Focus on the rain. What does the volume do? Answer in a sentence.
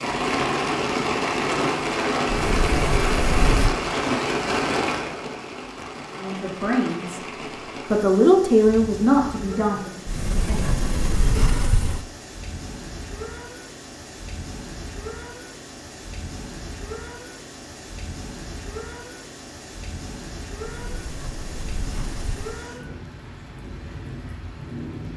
The volume of the rain goes down.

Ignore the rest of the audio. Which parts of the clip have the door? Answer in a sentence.
You can hear the door from 2.2 to 3.8 s, from 10.1 to 12.1 s and from 20.6 to 22.6 s.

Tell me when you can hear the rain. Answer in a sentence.
You can hear the rain from 0.0 to 25.1 s.